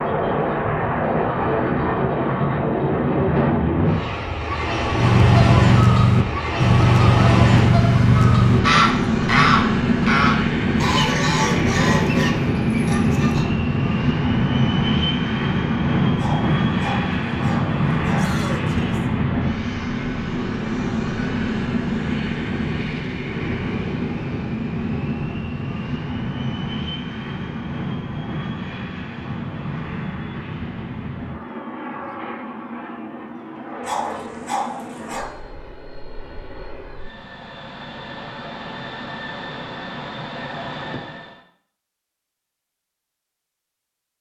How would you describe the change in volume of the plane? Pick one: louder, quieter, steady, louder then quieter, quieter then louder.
quieter.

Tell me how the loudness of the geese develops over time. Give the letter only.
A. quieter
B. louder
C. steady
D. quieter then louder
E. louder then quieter
A.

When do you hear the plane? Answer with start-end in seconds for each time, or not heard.
0.0-41.4.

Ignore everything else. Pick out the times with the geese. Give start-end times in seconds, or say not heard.
5.0-13.4.